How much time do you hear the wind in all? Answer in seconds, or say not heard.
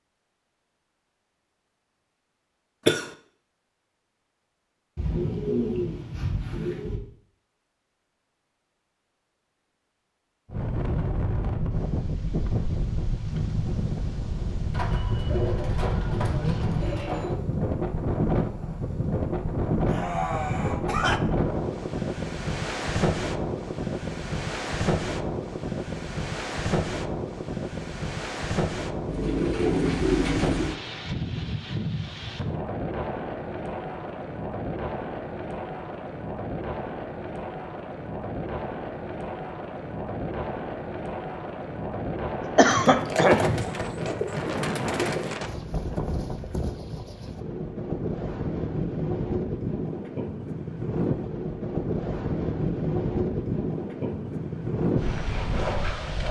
46 s.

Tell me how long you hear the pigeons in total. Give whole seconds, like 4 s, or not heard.
9 s.